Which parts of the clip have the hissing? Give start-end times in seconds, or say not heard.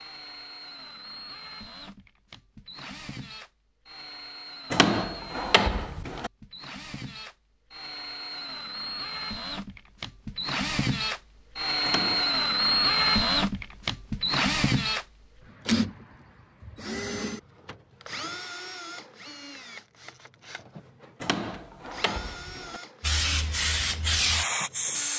23.0-25.1.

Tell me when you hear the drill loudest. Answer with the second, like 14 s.
13 s.